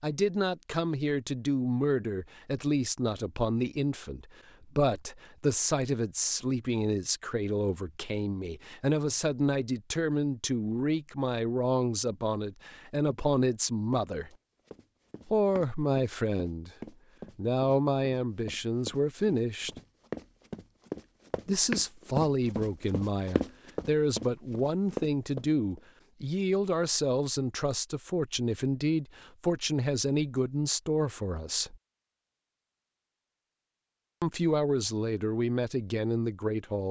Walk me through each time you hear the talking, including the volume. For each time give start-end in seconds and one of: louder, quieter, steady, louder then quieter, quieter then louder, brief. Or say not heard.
0.0-14.3 steady
15.2-16.7 brief
17.4-19.7 brief
21.4-31.8 steady
34.2-36.8 brief.